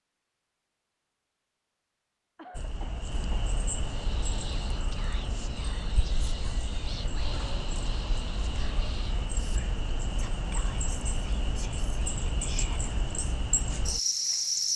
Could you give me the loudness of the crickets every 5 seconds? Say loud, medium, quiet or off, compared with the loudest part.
medium, medium, loud.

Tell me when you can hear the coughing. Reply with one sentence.
You can hear the coughing from 2.4 to 3.5 s.